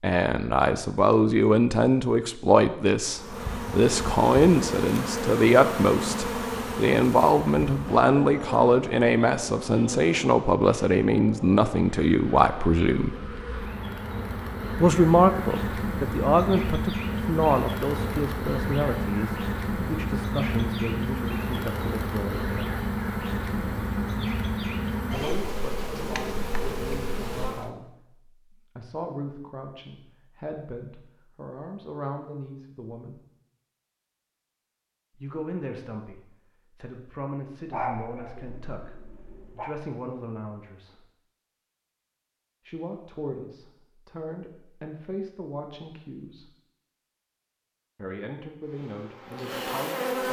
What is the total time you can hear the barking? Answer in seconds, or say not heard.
2 s.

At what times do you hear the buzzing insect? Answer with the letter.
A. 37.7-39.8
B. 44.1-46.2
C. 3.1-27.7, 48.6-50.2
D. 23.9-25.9
C.